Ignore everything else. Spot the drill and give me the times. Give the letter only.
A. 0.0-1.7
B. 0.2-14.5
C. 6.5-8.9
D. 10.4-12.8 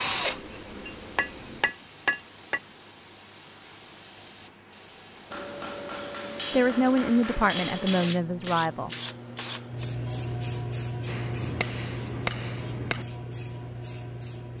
A.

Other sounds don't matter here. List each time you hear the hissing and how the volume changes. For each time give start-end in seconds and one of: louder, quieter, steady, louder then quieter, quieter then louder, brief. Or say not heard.
0.2-14.5 louder.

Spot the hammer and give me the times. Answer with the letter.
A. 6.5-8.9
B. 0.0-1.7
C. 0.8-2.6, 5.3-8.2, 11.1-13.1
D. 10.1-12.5
C.